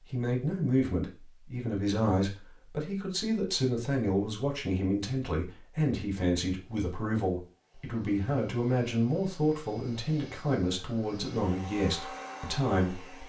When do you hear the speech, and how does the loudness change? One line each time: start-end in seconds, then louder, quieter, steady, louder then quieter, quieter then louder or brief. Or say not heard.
0.1-13.2 steady.